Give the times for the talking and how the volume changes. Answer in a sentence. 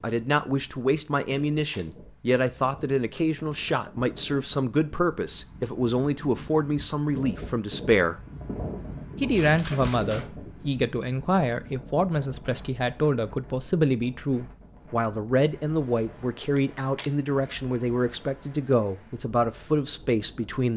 You can hear the talking from 0.0 to 8.2 s, at a steady volume; and from 9.2 to 20.7 s, at a steady volume.